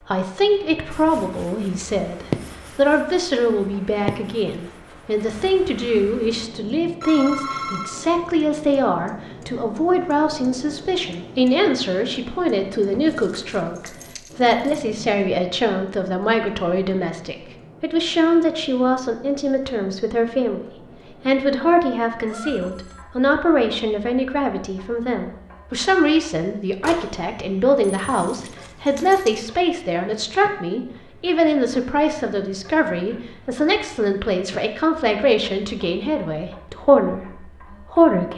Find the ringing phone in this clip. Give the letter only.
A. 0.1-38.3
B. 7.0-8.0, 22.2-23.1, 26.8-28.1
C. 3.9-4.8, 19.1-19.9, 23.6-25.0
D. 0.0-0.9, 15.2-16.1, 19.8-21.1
B.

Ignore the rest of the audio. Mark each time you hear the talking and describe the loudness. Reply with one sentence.
The talking can be heard from 0.1 to 38.3 s, at a steady volume.